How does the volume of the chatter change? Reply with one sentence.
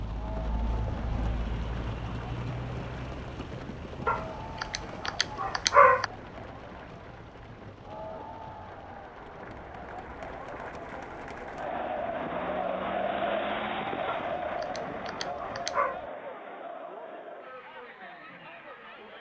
The loudness of the chatter goes up, then down.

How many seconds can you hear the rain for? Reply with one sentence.
The rain can be heard for 16 seconds in total.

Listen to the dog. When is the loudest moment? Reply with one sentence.
The volume of the dog peaks at 6 seconds.